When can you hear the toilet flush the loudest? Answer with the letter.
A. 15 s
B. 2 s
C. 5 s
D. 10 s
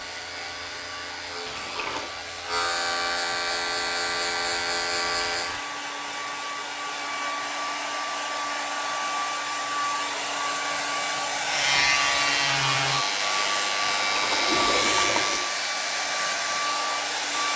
A.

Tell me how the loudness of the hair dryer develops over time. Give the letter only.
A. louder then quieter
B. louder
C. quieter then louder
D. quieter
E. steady
B.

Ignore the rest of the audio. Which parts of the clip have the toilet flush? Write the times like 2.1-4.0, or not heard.
1.4-2.1, 13.8-15.6.